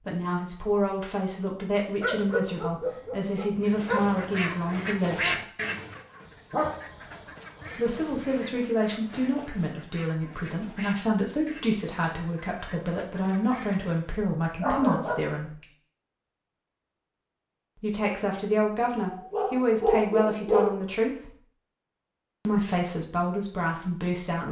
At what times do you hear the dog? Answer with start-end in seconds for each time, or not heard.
2.0-4.5, 6.5-7.0, 7.6-8.2, 14.6-15.7, 19.1-20.8.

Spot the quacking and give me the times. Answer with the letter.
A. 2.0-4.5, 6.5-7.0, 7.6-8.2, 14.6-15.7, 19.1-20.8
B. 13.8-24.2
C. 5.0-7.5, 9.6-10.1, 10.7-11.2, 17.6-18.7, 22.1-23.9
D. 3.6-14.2
D.